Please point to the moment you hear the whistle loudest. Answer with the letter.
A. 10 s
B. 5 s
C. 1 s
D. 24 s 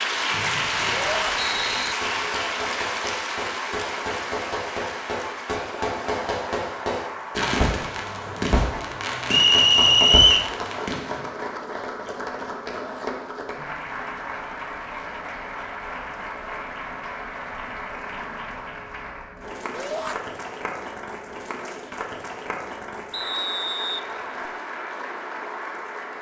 A.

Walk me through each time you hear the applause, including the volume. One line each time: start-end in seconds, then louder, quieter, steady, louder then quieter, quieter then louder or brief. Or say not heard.
0.0-26.1 quieter.